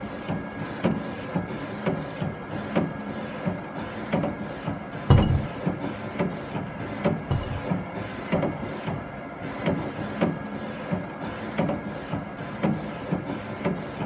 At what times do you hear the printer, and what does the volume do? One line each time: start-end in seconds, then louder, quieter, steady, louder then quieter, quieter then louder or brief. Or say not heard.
0.0-14.0 steady.